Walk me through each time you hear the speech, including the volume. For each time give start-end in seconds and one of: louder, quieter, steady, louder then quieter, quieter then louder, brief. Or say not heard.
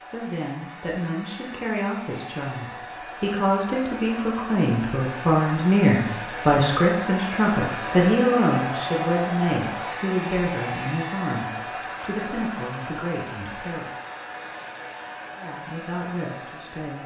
0.0-13.9 louder then quieter
15.3-17.0 brief.